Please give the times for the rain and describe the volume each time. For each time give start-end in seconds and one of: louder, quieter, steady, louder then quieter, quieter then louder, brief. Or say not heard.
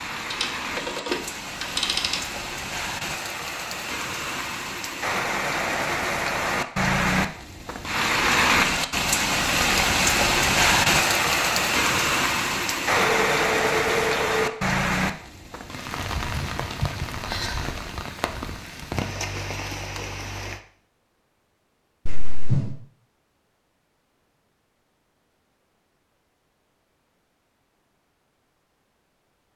0.0-20.6 louder then quieter.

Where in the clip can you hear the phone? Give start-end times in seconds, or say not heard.
0.3-2.2, 13.0-14.4, 22.1-22.8.